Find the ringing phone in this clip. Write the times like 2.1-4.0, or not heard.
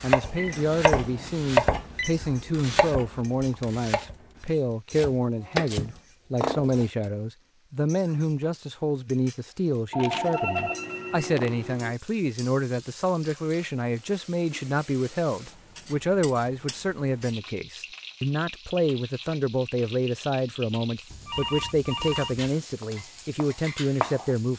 0.3-2.1, 9.9-11.9, 21.1-22.5.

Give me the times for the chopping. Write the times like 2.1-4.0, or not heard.
0.0-6.8, 22.8-24.5.